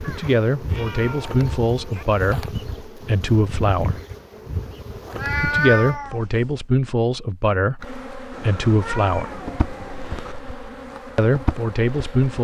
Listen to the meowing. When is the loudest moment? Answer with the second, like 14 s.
6 s.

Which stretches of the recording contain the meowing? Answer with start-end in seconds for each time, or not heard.
0.0-2.0, 5.2-6.5, 8.3-10.3.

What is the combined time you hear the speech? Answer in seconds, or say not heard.
9 s.